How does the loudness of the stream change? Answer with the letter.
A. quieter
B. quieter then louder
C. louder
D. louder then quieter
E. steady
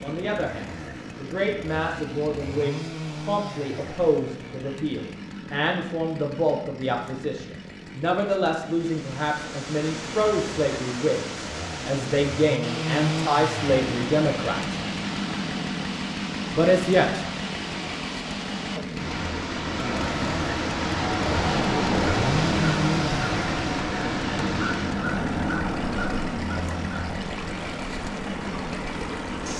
D.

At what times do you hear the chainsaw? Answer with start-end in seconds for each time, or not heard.
0.0-29.5.